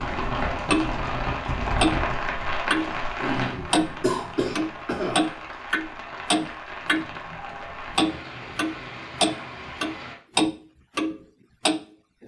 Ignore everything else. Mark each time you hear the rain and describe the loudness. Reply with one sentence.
You can hear the rain from 0.0 to 10.2 s, getting quieter.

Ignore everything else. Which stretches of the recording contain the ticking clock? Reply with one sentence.
You can hear the ticking clock from 0.1 to 3.0 s, from 3.7 to 7.3 s and from 8.0 to 12.2 s.